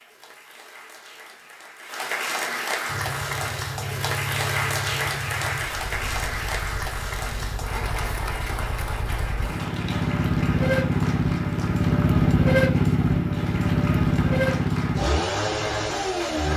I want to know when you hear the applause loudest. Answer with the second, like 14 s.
5 s.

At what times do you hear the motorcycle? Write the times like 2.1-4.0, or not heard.
2.9-16.5.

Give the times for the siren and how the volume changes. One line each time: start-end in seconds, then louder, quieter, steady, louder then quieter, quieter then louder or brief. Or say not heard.
not heard.